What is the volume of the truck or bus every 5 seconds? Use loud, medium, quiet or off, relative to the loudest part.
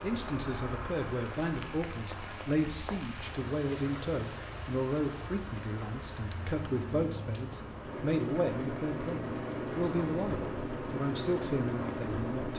medium, loud, loud.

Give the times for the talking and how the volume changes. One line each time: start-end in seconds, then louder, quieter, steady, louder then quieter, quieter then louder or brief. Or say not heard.
0.0-12.5 steady.